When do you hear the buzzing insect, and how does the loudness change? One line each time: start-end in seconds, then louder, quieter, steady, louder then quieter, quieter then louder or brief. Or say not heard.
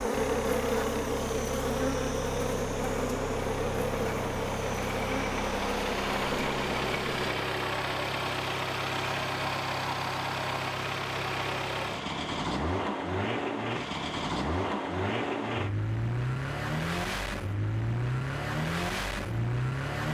0.0-7.3 quieter.